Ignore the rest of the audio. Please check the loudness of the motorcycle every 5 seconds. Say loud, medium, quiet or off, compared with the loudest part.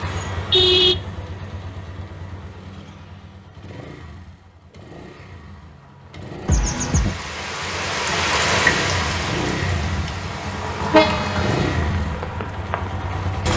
medium, medium, loud.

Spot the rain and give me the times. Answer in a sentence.
You can hear the rain from 6.6 to 13.5 s.